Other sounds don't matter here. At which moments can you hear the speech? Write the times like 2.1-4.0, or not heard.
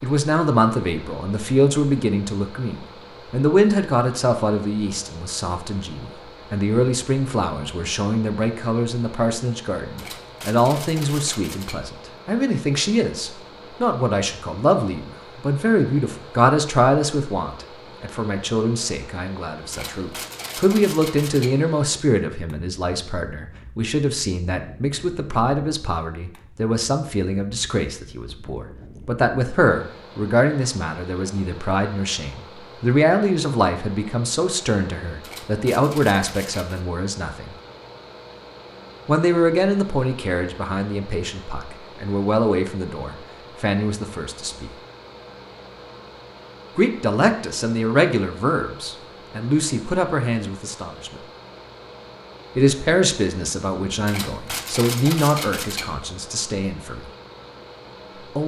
0.0-37.5, 39.0-44.7, 46.8-51.2, 52.5-57.1.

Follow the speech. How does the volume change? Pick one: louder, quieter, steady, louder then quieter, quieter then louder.
steady.